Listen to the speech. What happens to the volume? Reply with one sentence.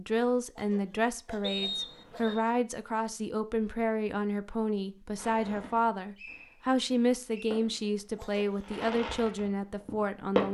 The loudness of the speech stays about the same.